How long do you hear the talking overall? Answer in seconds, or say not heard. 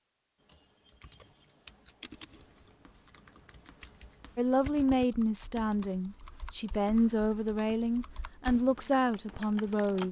6 s.